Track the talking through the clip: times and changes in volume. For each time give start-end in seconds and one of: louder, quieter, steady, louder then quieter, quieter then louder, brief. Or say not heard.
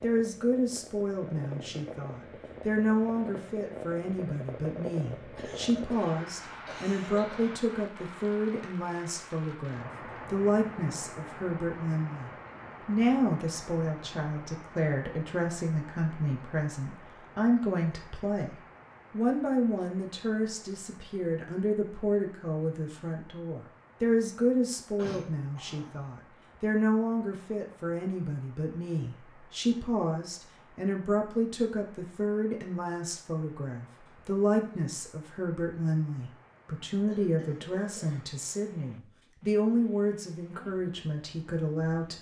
0.0-42.1 steady.